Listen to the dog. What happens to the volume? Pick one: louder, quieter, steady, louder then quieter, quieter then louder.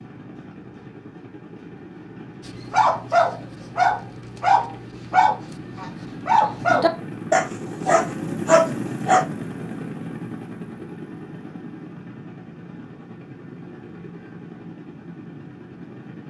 steady.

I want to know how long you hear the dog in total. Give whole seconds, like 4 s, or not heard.
7 s.